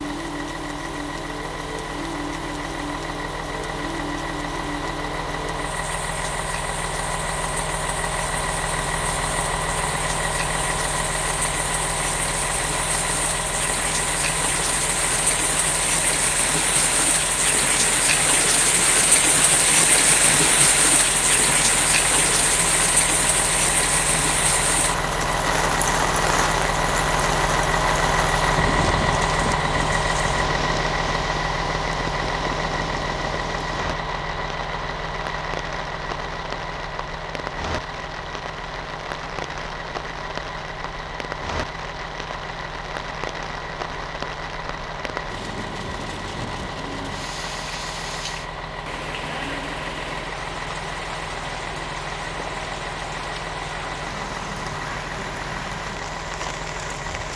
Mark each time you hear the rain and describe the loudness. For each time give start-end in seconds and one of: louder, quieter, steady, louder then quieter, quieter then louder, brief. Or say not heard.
0.0-57.3 louder then quieter.